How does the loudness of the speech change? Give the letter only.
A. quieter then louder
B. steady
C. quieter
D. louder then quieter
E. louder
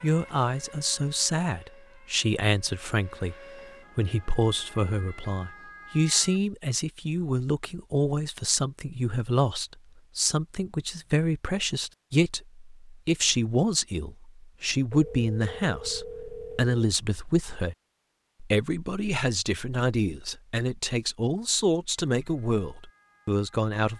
B.